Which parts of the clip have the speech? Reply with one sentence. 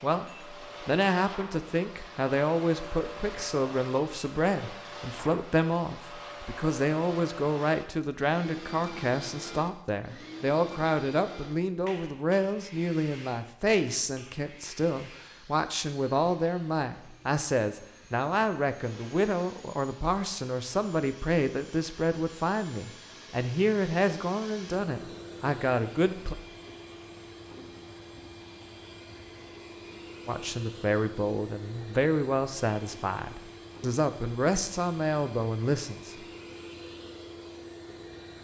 The speech can be heard from 0.0 to 26.4 s and from 30.2 to 36.1 s.